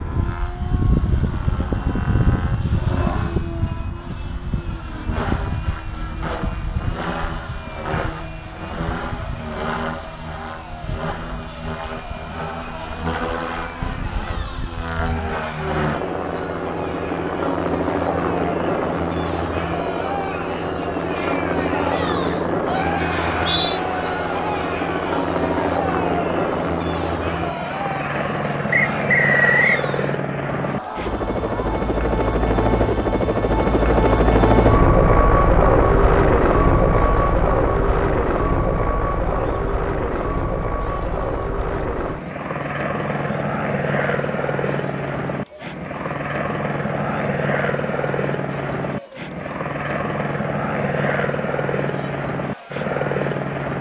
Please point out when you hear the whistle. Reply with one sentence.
The whistle can be heard from 23.2 to 23.8 s and from 28.7 to 29.9 s.